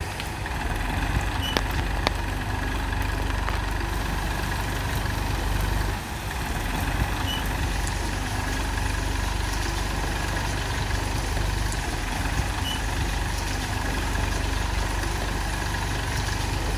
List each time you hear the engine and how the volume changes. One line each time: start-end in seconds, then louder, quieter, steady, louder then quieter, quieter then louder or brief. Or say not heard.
0.0-16.7 steady.